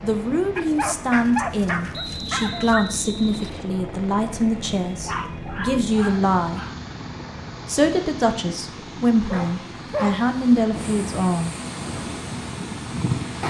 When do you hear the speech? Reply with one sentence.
The speech can be heard from 0.0 to 6.7 s and from 7.7 to 11.5 s.